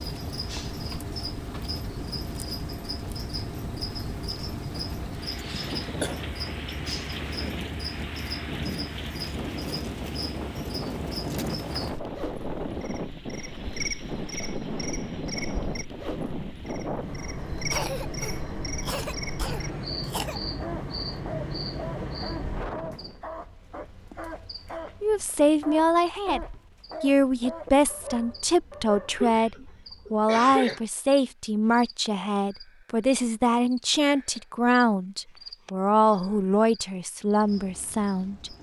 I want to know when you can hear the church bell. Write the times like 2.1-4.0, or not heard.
not heard.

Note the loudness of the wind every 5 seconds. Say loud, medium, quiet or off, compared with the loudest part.
medium, loud, loud, loud, loud, off, off, off.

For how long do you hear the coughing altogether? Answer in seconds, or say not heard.
5 s.